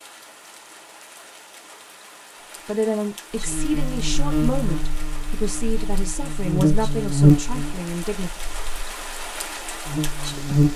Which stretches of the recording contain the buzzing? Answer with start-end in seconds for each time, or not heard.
3.4-10.7.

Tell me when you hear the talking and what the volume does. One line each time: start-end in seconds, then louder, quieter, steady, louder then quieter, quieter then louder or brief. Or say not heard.
2.6-8.3 steady.